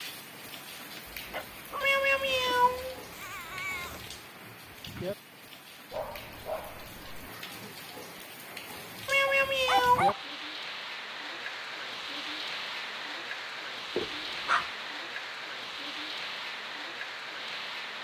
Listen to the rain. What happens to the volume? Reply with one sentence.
The volume of the rain goes up.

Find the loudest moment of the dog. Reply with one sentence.
The loudest moment of the dog is at 10 seconds.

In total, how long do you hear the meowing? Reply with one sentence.
The meowing can be heard for 3 seconds in total.